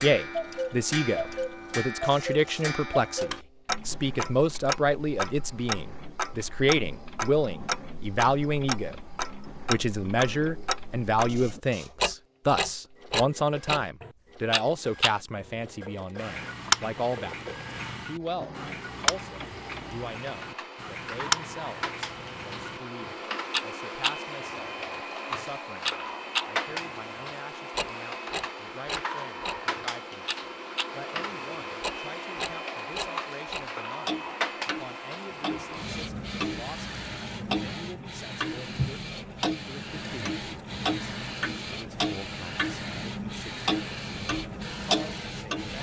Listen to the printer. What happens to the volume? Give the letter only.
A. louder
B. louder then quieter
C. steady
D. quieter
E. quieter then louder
A.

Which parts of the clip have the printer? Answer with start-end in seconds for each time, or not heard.
0.1-45.7.